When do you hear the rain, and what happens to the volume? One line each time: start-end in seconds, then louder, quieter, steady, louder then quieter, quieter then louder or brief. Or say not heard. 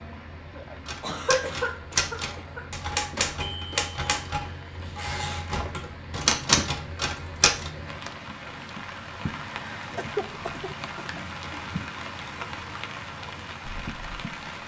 0.0-14.6 louder.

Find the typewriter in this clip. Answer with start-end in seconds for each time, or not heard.
0.8-7.7.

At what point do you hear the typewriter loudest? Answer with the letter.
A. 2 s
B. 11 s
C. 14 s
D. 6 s
D.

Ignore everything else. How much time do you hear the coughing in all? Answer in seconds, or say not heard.
4 s.